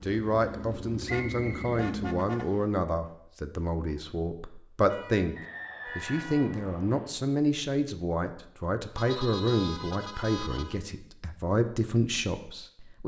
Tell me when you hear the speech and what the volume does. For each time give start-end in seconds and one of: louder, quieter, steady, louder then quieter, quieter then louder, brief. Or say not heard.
0.0-13.0 steady.